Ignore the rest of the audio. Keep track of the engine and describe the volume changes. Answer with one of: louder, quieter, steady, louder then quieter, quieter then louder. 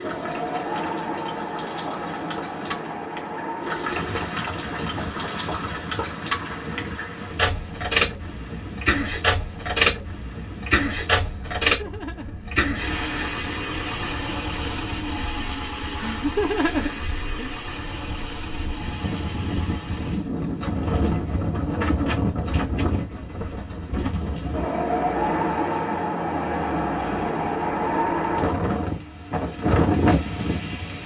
louder then quieter.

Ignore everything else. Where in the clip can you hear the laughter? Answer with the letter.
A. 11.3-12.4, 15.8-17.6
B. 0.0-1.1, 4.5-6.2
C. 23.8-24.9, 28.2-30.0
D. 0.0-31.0
A.